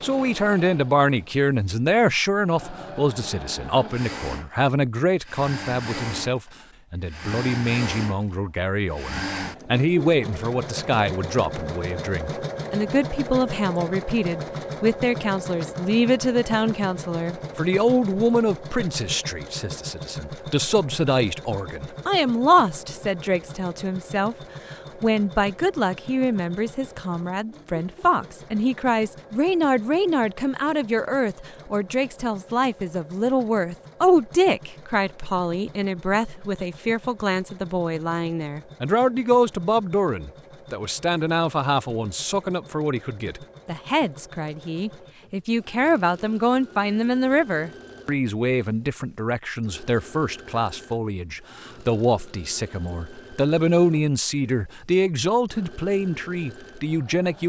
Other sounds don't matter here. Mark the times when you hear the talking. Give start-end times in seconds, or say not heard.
0.0-57.4.